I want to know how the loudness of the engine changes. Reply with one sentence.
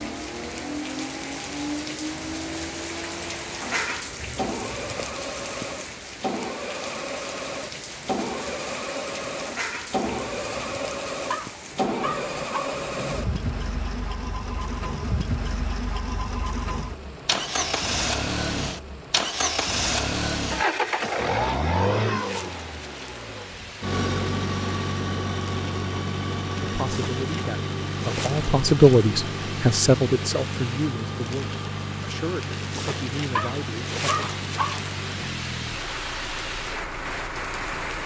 The volume of the engine goes up, then down.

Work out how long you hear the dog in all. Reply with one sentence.
The dog can be heard for 3 seconds in total.